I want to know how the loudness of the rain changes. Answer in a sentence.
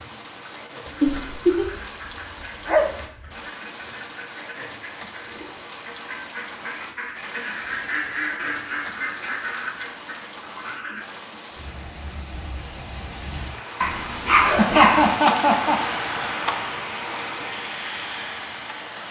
The volume of the rain goes up.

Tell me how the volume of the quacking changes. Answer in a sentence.
The volume of the quacking goes up.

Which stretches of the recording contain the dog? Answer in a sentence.
You can hear the dog from 0.8 to 3.4 s and from 13.8 to 15.2 s.